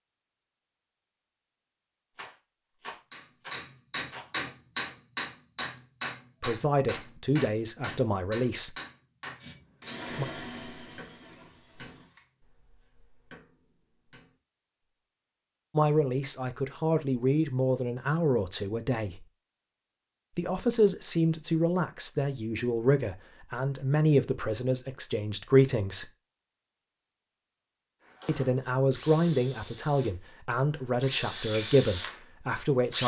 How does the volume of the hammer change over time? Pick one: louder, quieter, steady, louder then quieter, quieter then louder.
quieter.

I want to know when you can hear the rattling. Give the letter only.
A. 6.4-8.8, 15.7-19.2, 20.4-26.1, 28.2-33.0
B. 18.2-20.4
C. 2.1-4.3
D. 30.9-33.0
C.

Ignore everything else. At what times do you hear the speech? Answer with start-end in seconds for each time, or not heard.
6.4-8.8, 15.7-19.2, 20.4-26.1, 28.2-33.0.